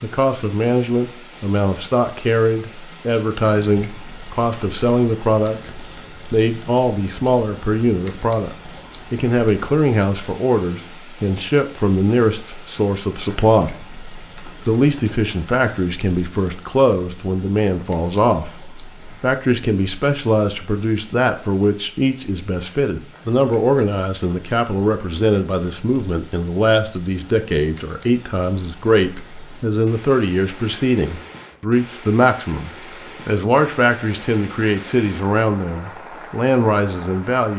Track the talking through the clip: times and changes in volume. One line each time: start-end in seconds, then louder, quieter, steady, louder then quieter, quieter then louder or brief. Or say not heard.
0.0-37.5 steady.